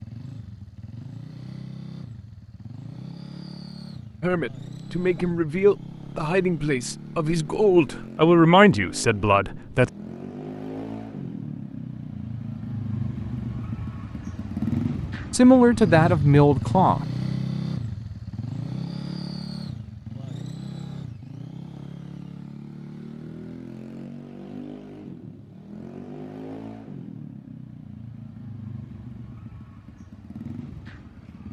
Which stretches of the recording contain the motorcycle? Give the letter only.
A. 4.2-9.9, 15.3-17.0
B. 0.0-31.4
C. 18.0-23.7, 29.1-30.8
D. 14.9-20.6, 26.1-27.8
B.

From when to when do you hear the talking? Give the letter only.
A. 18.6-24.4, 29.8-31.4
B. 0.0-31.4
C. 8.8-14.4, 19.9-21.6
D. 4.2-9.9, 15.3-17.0
D.